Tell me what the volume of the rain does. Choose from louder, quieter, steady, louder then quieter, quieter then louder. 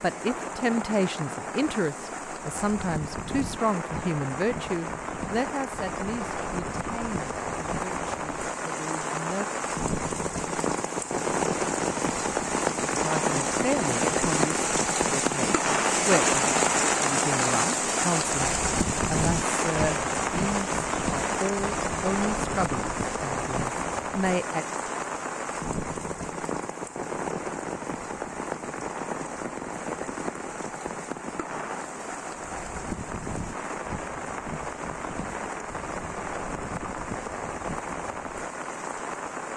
louder then quieter.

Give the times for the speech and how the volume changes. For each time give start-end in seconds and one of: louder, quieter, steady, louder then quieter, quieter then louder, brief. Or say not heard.
0.0-9.4 quieter
13.0-24.6 steady.